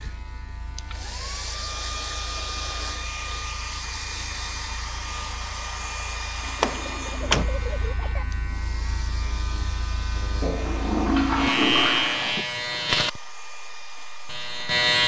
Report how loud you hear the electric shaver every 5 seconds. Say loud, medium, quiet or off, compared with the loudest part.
quiet, quiet, loud.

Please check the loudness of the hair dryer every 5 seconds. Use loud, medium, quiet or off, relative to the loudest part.
loud, loud, medium.